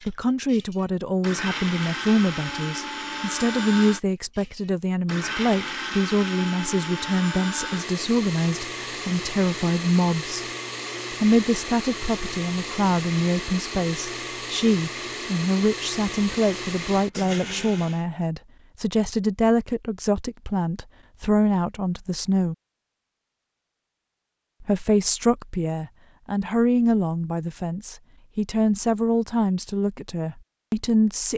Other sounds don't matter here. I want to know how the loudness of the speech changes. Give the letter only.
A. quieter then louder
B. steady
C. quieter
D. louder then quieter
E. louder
B.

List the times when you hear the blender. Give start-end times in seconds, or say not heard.
0.0-18.1.